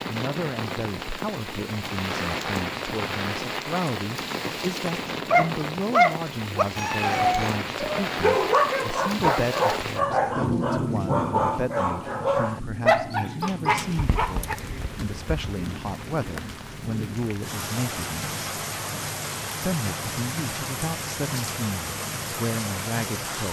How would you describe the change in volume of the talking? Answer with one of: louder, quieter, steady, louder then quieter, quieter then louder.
steady.